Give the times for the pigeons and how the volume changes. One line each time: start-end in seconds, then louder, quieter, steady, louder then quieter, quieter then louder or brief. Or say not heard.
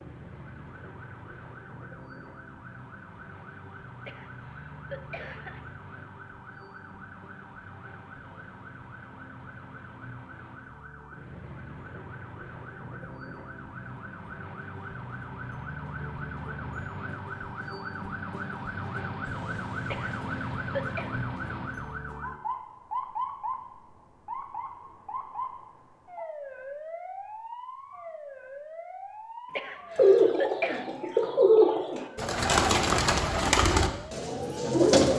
29.9-35.1 louder then quieter.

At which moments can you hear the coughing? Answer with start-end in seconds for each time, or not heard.
4.0-5.7, 19.9-21.1, 29.5-30.9.